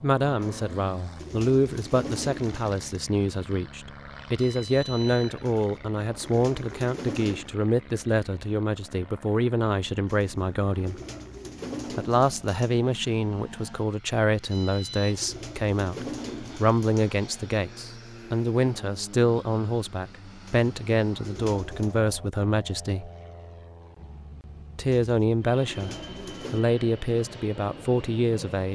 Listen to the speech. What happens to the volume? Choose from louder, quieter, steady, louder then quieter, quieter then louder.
steady.